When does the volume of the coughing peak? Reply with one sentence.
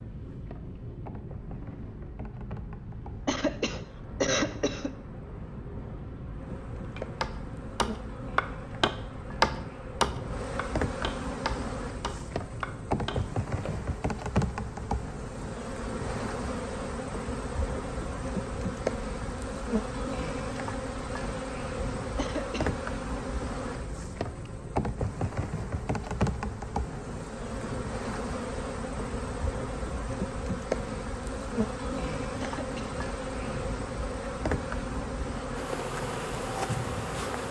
The loudest moment of the coughing is at 4 seconds.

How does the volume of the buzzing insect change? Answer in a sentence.
The volume of the buzzing insect goes up.